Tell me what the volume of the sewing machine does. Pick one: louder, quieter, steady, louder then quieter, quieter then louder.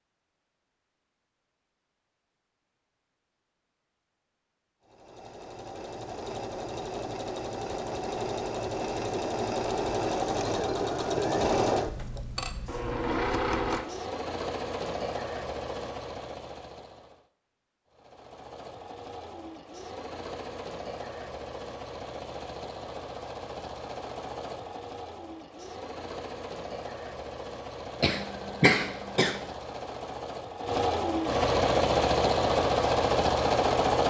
quieter then louder.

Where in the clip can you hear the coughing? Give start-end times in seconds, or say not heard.
28.0-29.4.